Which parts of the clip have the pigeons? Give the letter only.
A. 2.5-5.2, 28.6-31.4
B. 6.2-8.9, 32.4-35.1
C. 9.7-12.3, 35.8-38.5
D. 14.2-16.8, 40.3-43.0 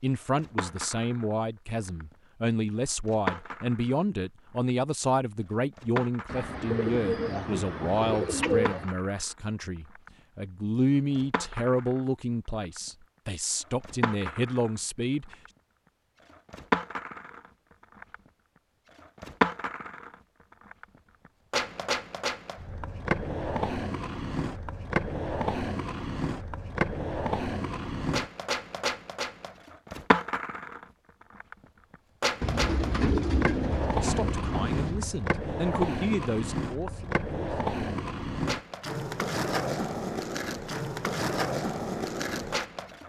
B.